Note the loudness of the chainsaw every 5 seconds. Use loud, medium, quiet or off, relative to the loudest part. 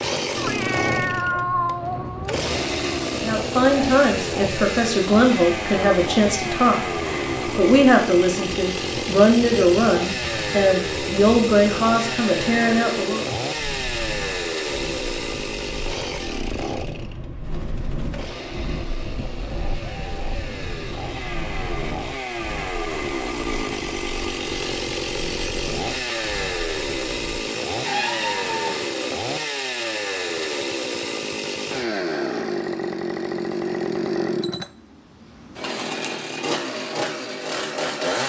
loud, loud, loud, medium, loud, loud, loud, loud.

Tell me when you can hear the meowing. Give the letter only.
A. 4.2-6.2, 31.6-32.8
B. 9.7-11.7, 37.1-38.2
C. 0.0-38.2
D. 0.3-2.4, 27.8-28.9
D.